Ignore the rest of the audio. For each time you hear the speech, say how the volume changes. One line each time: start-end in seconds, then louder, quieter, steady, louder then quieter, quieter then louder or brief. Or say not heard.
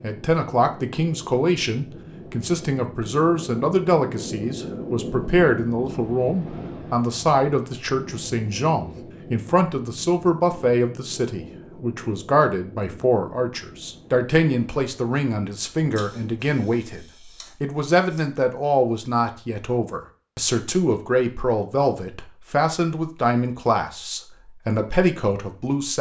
0.0-25.9 steady.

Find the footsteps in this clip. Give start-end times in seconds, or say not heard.
not heard.